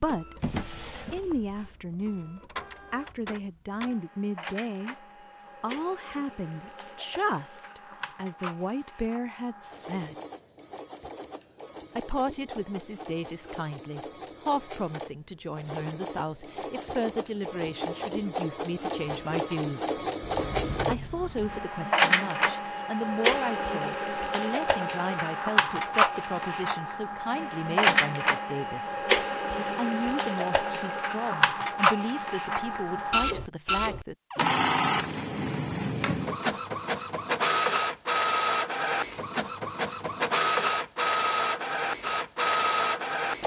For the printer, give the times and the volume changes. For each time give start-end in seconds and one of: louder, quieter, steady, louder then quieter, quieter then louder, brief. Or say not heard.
0.0-43.4 louder.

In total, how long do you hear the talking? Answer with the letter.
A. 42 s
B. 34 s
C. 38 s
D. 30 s
D.